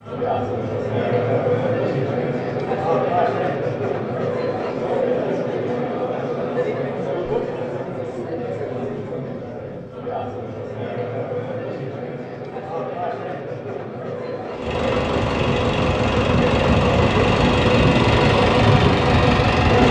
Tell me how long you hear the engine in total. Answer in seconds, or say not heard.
5 s.